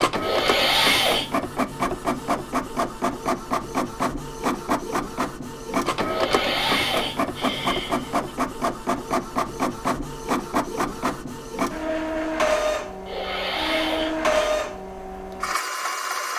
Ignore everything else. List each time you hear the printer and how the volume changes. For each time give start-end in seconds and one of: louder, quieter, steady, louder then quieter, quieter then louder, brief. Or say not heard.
0.0-16.3 steady.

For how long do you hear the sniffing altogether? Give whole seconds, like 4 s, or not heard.
4 s.